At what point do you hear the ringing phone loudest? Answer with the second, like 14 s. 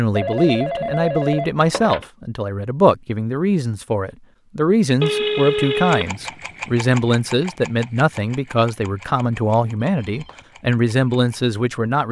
5 s.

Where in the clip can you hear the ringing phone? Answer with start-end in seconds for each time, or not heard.
0.1-2.0, 5.0-6.2, 9.8-10.4.